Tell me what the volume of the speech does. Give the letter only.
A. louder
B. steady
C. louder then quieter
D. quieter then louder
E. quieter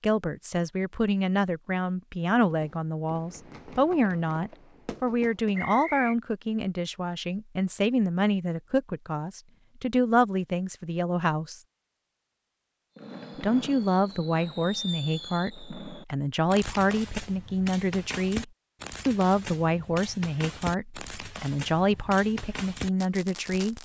B.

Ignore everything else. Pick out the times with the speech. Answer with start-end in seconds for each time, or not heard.
0.0-11.6, 13.4-23.7.